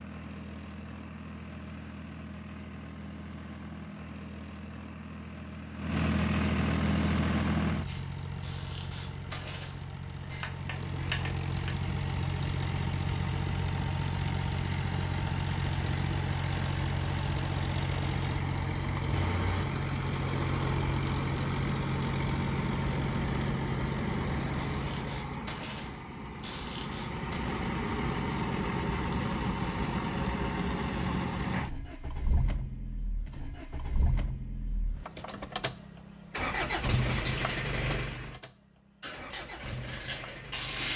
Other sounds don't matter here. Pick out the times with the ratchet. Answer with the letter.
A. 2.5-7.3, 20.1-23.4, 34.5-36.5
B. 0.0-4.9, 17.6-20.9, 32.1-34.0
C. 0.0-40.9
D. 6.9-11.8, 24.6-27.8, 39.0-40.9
D.